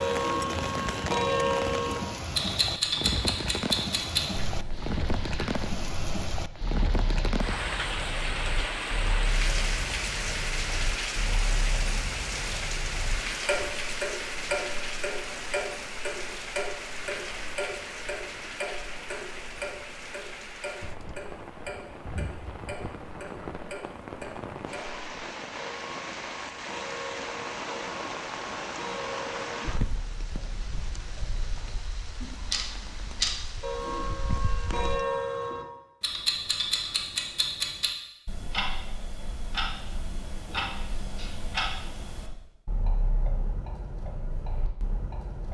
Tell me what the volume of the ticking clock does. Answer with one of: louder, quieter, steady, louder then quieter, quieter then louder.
quieter then louder.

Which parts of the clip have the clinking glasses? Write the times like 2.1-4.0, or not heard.
not heard.